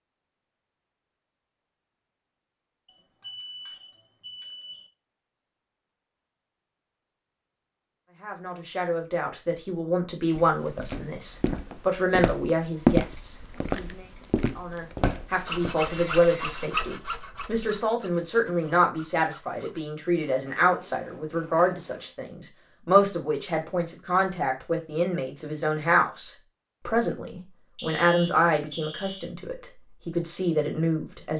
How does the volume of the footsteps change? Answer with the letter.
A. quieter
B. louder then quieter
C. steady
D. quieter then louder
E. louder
B.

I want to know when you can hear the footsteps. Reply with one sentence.
The footsteps can be heard from 10.3 to 15.7 s.